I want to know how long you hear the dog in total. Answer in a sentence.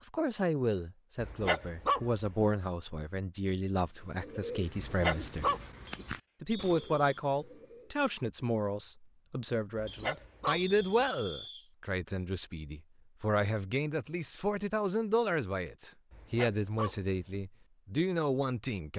You can hear the dog for 5 seconds altogether.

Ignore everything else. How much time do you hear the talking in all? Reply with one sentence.
You can hear the talking for 18 seconds altogether.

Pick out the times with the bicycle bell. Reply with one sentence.
The bicycle bell can't be heard in this clip.